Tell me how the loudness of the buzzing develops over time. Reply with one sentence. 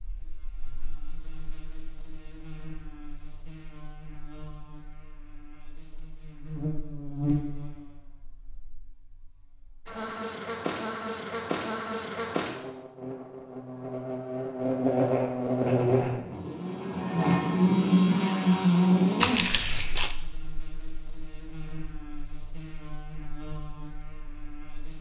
The loudness of the buzzing goes up, then down.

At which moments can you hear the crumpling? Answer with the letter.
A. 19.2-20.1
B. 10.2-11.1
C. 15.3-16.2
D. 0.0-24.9
A.